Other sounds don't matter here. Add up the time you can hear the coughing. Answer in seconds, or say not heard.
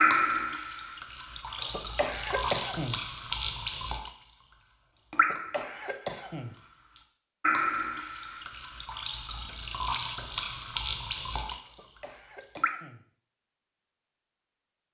4 s.